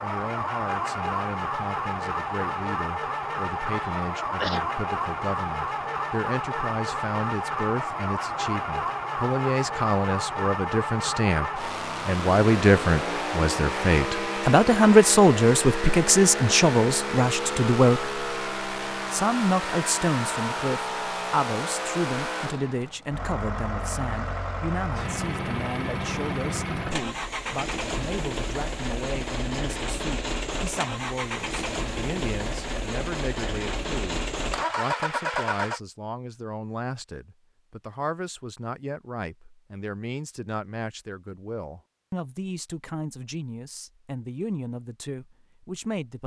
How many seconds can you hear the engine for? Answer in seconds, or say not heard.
36 s.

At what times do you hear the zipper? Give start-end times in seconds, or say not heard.
not heard.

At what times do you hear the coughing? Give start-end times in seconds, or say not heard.
3.7-4.7.